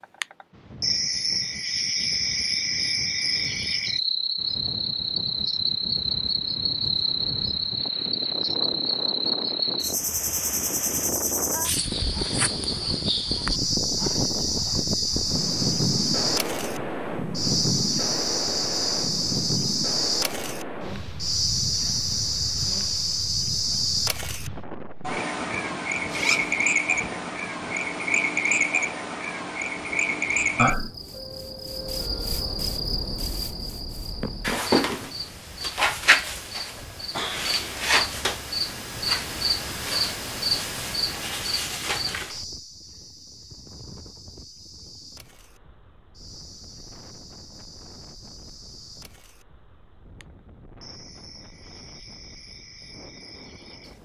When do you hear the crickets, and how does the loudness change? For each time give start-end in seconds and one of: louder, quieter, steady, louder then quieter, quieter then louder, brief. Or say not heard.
0.0-53.9 quieter.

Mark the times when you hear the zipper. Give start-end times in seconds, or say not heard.
26.1-26.6.